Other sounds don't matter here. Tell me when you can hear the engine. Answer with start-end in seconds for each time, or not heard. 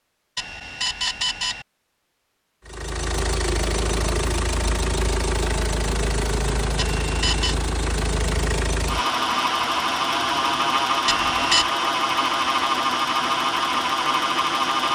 2.6-14.8.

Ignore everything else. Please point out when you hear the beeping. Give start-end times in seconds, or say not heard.
0.3-1.6, 6.8-7.5, 11.1-11.7.